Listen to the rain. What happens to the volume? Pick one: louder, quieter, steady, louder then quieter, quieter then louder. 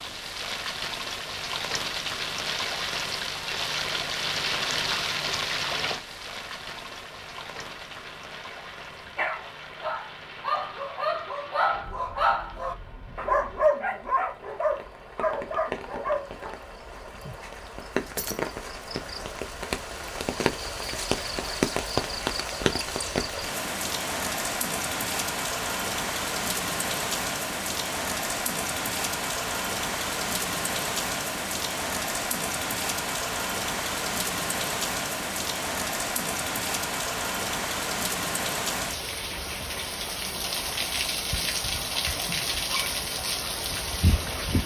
quieter then louder.